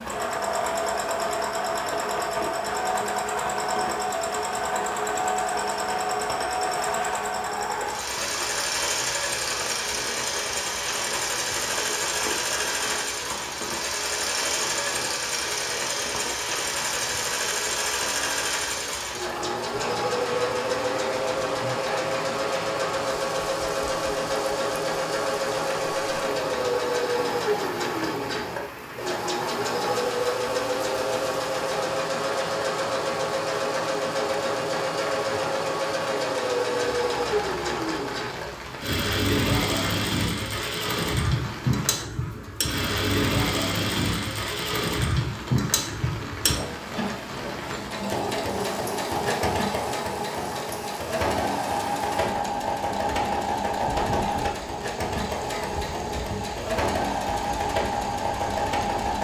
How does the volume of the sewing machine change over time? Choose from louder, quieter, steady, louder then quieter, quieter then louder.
steady.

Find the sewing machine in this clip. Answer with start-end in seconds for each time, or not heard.
0.0-59.1.